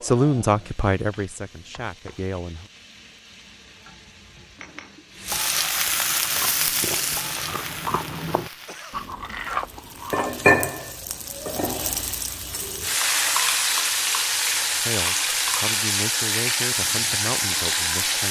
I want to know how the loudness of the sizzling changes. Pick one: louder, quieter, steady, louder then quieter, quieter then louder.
louder.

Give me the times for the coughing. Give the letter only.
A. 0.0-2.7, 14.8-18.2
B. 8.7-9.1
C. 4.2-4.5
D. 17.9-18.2
B.